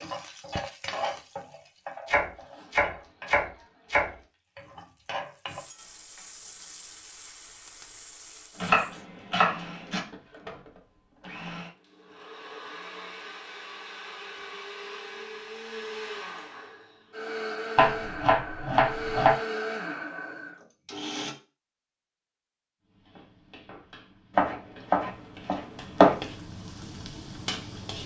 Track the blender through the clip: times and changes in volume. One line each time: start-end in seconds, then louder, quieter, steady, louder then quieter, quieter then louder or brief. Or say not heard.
8.5-21.4 louder.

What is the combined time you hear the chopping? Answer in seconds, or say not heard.
7 s.